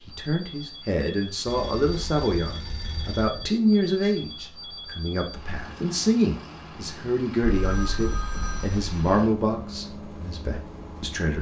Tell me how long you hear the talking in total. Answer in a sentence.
You can hear the talking for 11 seconds altogether.